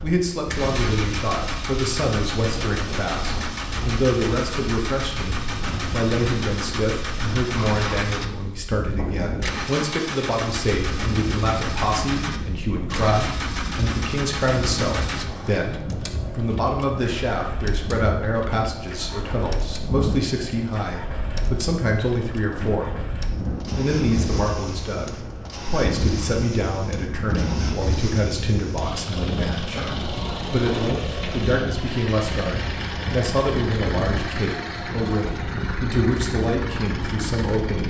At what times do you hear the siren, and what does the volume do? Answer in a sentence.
You can't hear the siren here.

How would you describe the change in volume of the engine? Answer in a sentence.
The loudness of the engine goes down, then up.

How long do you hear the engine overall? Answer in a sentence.
The engine can be heard for 38 seconds in total.